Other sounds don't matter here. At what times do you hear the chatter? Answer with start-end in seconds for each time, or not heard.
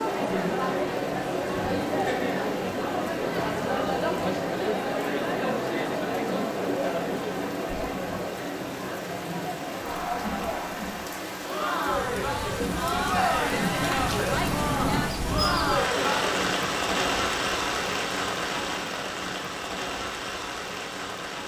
0.0-16.4.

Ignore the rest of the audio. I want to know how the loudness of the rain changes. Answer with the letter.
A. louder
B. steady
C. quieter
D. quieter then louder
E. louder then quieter
A.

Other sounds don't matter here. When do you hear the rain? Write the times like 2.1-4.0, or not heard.
0.0-21.4.